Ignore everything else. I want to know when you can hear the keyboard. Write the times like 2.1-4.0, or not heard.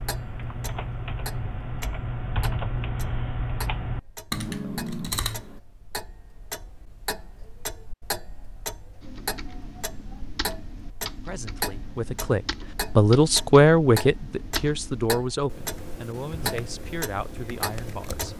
0.0-5.6, 9.0-18.3.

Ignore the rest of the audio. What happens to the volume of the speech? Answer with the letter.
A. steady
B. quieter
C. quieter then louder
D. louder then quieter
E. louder
D.